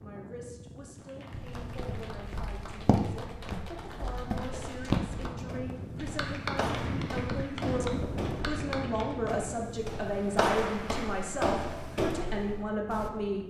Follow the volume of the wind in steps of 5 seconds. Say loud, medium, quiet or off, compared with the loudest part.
medium, loud, medium.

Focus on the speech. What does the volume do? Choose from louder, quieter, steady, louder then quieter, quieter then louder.
louder.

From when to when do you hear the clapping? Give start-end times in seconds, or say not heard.
0.9-9.4.